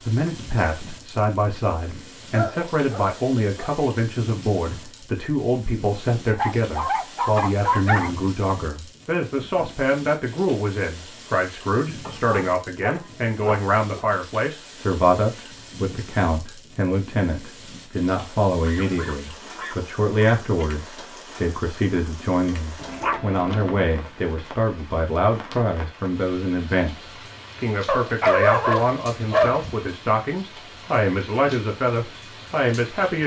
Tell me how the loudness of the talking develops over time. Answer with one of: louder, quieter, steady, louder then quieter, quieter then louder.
steady.